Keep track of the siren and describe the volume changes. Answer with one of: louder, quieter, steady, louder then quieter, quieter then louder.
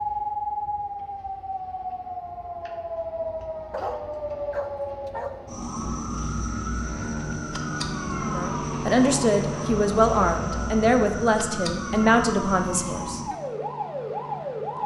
steady.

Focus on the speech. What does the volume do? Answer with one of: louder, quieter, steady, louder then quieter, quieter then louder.
steady.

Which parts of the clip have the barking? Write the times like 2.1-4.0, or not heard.
3.7-5.3.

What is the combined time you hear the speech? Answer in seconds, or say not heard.
5 s.